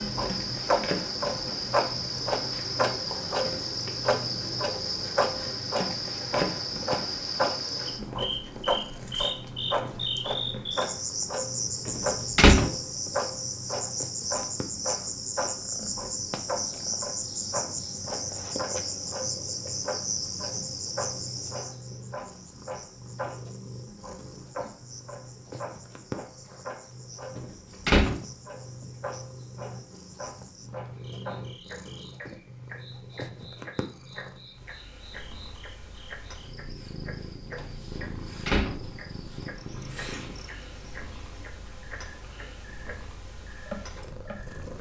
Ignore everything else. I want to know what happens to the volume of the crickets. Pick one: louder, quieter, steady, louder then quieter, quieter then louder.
quieter.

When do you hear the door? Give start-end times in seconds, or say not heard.
11.8-12.7, 27.4-28.2, 38.0-38.8.